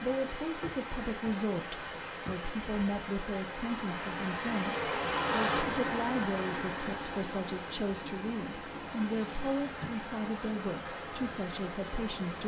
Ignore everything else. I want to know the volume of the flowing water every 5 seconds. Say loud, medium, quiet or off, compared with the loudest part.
loud, loud, medium.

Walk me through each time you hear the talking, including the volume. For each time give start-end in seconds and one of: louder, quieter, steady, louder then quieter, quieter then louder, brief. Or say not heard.
0.0-12.4 steady.